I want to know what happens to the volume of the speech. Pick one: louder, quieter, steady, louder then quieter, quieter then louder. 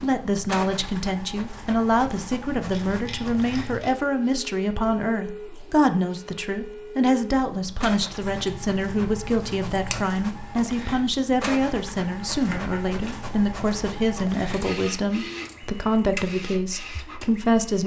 steady.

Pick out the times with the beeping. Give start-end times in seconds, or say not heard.
not heard.